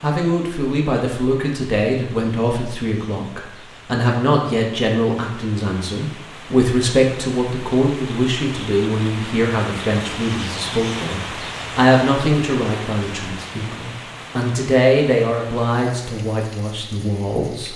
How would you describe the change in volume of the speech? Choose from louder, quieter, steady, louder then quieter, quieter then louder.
steady.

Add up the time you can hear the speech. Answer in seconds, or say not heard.
18 s.